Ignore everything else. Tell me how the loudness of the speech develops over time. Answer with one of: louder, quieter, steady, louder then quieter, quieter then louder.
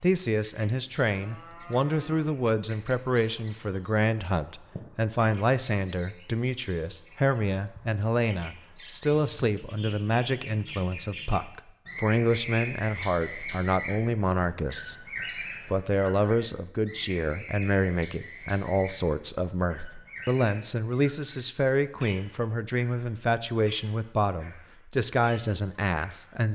steady.